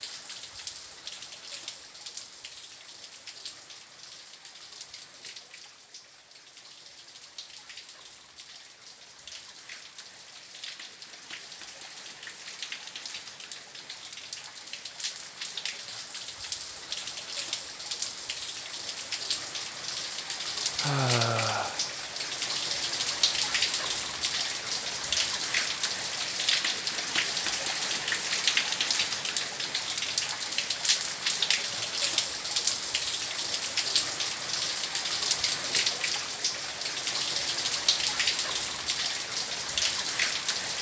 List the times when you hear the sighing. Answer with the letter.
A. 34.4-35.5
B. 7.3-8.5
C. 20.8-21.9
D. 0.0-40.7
C.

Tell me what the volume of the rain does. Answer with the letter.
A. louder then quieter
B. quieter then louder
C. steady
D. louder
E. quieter
D.